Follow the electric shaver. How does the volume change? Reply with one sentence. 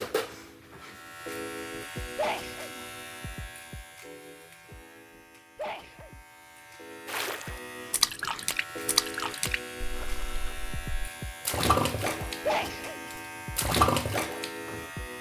The volume of the electric shaver goes down, then up.